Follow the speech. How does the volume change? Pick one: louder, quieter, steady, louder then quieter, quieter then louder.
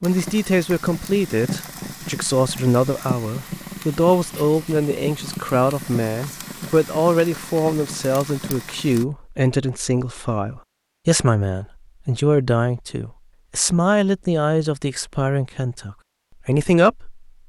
steady.